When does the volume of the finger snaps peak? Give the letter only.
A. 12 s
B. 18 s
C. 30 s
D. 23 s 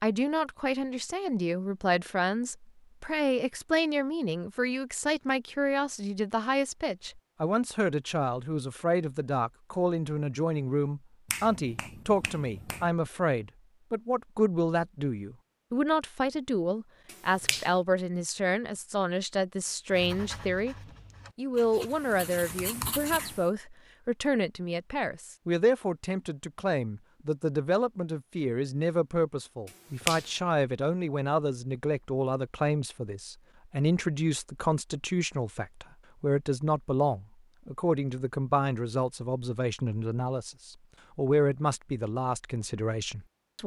C.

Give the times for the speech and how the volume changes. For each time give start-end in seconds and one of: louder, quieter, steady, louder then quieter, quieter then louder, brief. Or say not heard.
0.0-20.8 steady
21.4-43.6 steady.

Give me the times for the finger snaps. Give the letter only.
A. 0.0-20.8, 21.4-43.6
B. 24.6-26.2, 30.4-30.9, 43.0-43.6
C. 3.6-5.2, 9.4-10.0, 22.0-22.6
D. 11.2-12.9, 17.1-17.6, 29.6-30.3
D.